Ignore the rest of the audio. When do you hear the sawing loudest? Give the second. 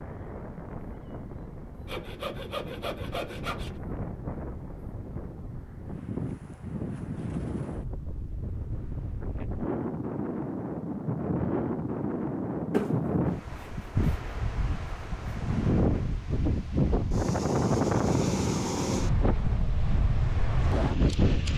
13 s.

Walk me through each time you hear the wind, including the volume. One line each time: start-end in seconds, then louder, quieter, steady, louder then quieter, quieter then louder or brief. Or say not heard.
0.0-21.5 louder.